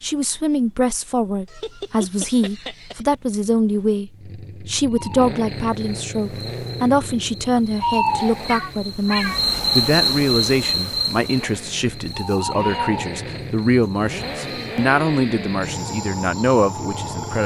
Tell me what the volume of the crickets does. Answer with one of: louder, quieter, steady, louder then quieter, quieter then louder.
louder then quieter.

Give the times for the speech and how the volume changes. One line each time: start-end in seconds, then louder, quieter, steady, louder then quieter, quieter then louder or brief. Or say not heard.
0.0-17.4 steady.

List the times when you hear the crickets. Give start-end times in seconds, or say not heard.
4.9-17.4.